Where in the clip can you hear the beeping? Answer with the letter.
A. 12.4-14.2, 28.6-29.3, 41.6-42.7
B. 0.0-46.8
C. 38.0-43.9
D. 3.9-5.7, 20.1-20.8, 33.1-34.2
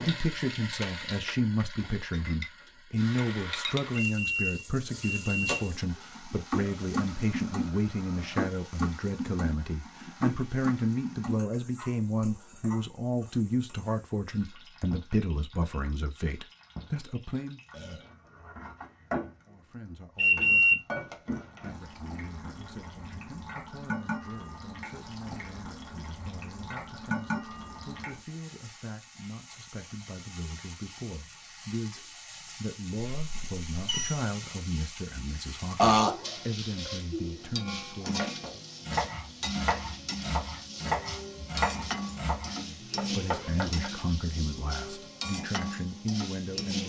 D.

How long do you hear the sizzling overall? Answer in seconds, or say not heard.
47 s.